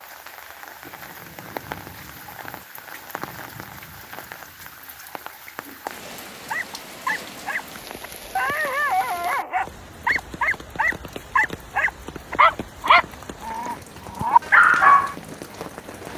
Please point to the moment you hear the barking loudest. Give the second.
15 s.